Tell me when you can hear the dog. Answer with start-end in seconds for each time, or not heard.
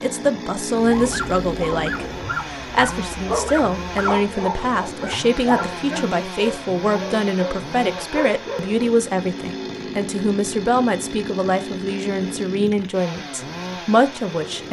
0.7-8.8.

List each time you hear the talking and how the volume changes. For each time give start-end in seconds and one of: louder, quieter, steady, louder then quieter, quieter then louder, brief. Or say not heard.
0.0-14.6 steady.